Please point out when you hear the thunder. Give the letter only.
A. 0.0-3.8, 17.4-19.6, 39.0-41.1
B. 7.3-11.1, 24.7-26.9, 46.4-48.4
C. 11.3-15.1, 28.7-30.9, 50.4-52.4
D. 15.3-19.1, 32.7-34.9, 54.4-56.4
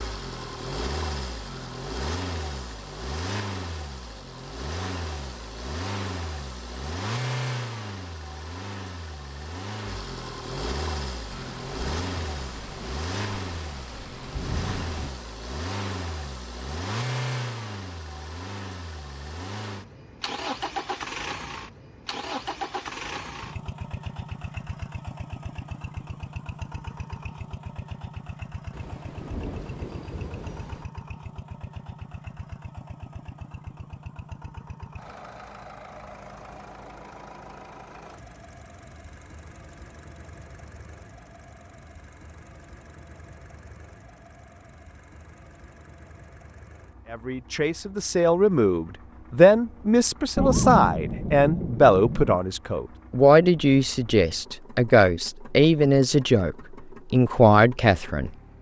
C.